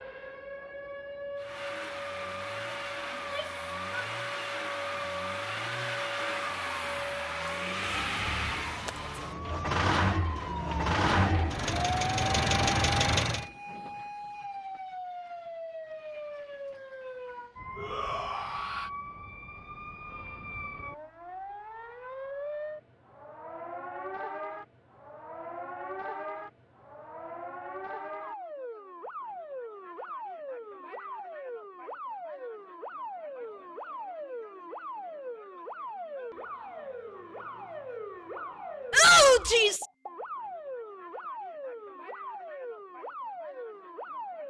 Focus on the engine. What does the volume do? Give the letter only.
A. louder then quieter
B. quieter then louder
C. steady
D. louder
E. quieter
D.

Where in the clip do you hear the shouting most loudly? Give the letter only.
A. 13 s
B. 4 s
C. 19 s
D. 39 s
D.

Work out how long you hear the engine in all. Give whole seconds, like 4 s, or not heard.
12 s.